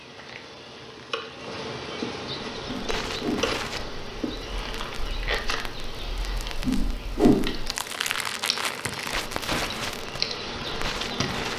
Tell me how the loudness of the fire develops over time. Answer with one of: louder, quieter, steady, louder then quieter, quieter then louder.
quieter then louder.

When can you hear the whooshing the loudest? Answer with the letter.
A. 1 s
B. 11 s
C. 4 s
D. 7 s
D.